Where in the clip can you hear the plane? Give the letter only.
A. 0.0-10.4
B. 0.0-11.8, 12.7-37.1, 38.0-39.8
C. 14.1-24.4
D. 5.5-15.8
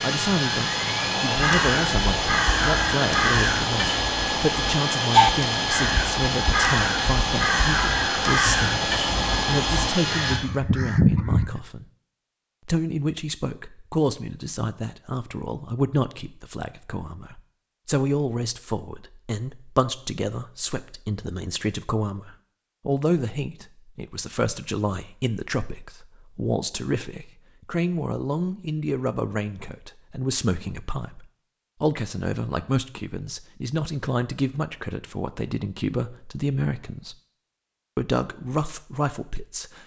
A.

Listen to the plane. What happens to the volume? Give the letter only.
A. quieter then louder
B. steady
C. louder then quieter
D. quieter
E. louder
B.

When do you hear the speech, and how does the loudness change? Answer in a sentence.
You can hear the speech from 0.0 to 11.8 s, at a steady volume; from 12.7 to 37.1 s, at a steady volume; and briefly from 38.0 to 39.8 s.